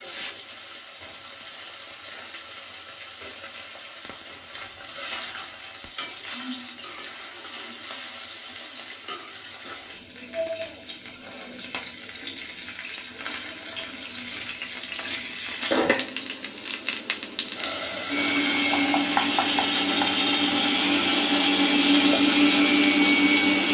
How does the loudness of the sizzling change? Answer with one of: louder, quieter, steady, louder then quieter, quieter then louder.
louder.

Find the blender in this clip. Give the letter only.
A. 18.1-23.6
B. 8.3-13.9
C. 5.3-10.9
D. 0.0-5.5
A.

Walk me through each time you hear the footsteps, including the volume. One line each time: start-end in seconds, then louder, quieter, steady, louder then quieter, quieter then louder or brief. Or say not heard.
not heard.